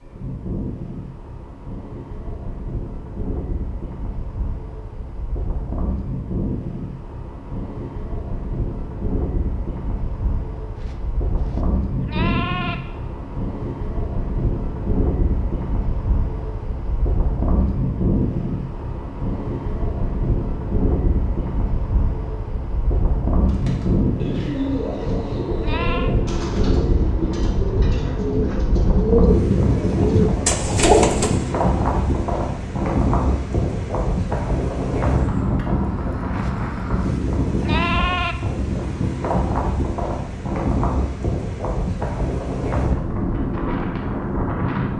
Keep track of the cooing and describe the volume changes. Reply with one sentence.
The volume of the cooing goes up.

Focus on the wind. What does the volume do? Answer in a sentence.
The volume of the wind goes up.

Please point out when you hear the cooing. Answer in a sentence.
The cooing can be heard from 23.4 to 31.4 s.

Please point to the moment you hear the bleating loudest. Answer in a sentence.
The loudest moment of the bleating is at 38 seconds.